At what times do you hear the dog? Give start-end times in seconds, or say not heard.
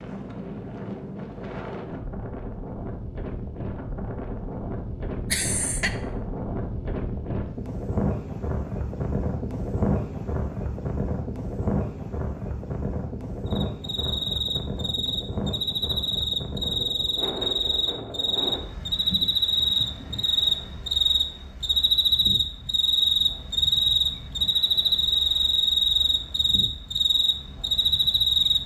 not heard.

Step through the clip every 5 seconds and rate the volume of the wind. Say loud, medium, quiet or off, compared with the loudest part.
medium, loud, loud, medium, quiet, quiet.